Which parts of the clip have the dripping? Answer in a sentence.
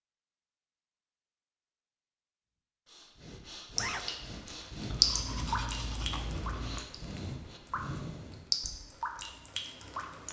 The dripping can be heard from 3.8 to 10.2 s.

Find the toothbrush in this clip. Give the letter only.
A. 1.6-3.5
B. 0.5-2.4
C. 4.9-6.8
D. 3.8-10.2
C.